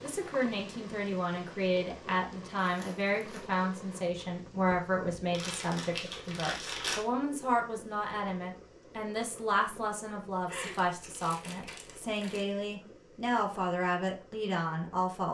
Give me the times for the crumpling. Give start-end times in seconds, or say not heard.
2.6-3.5, 5.3-7.0, 10.4-12.4.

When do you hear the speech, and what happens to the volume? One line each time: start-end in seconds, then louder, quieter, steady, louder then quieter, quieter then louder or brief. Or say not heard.
0.0-15.2 steady.